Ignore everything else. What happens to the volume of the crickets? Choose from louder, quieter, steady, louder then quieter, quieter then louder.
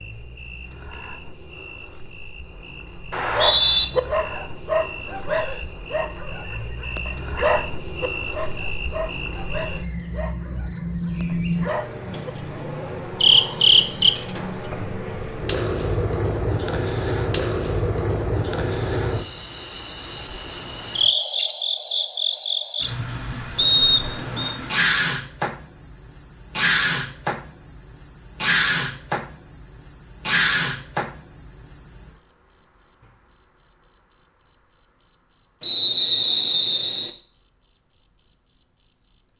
louder.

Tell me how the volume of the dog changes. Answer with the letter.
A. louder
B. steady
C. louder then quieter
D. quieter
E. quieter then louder
D.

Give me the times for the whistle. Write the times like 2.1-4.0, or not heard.
3.1-3.9, 23.6-24.6, 35.6-37.1.